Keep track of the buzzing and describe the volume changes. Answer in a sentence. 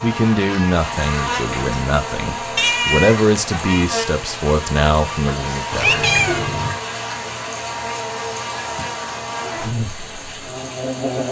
The volume of the buzzing stays about the same.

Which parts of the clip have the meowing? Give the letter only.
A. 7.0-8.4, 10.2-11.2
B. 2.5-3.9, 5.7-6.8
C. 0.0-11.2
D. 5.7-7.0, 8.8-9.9
B.